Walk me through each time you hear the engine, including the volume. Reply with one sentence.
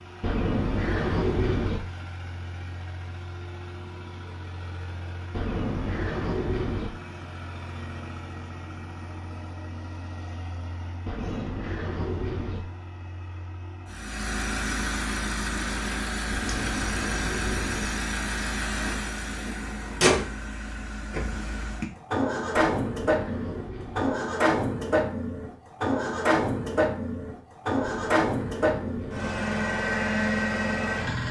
You can hear the engine from 0.0 to 31.2 s, getting louder.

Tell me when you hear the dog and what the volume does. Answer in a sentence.
You can't hear the dog here.